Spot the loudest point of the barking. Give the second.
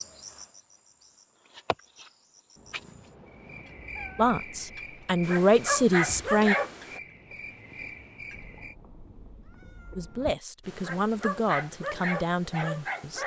6 s.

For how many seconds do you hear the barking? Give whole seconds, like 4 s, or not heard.
4 s.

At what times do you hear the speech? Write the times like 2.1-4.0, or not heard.
4.2-6.5, 9.9-13.2.